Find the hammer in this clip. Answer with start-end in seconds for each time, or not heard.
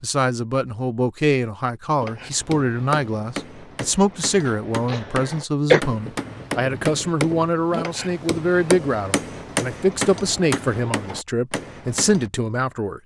2.0-12.3.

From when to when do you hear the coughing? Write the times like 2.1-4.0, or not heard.
4.5-5.8.